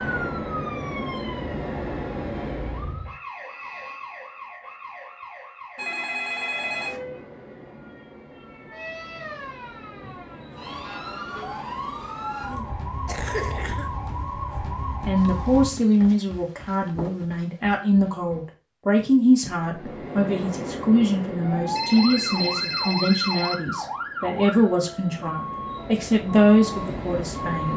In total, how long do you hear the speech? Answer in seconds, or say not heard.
13 s.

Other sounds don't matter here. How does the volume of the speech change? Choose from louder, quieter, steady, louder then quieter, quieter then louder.
steady.